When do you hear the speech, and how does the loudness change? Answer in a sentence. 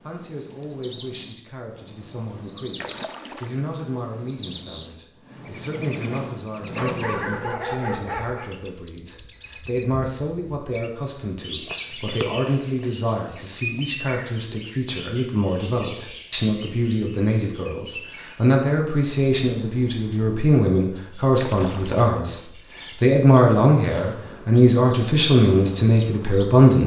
The speech can be heard from 0.0 to 26.8 s, getting louder.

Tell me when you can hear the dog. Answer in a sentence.
You can hear the dog from 6.7 to 8.5 s.